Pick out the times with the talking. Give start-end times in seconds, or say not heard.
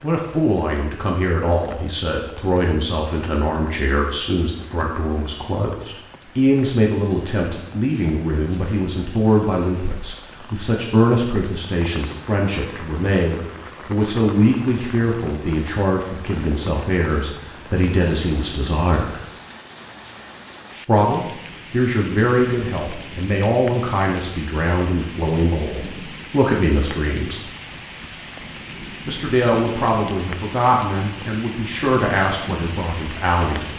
0.0-19.2, 20.9-27.5, 29.1-33.7.